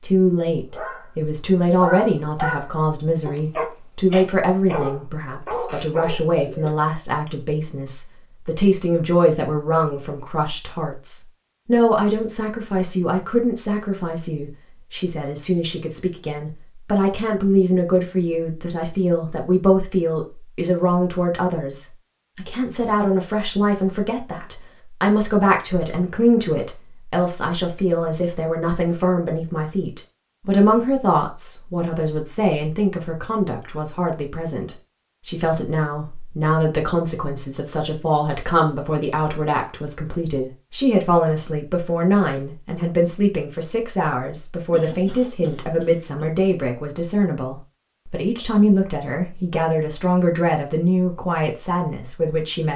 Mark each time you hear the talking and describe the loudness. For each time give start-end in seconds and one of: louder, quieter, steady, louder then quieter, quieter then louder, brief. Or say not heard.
0.0-52.7 steady.